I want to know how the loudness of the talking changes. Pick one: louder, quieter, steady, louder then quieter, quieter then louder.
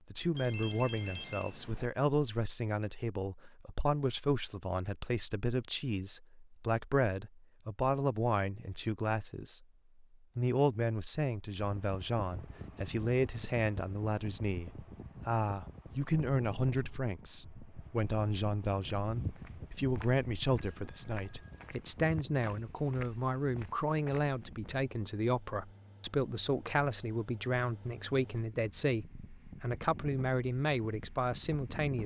steady.